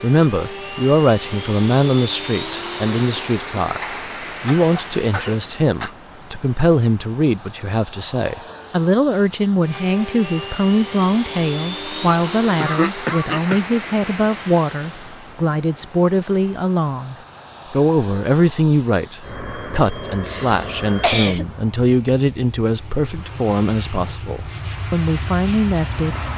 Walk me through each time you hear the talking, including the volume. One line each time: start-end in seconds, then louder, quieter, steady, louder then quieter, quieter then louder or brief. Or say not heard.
0.0-26.2 steady.